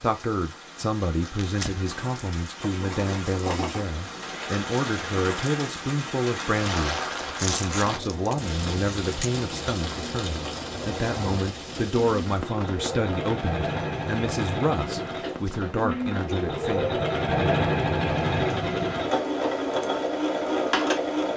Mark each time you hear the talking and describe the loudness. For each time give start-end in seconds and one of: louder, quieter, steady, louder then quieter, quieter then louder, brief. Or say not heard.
0.0-16.9 steady.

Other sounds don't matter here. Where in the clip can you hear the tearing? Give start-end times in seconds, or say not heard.
1.4-1.8, 7.3-9.3, 15.2-15.7.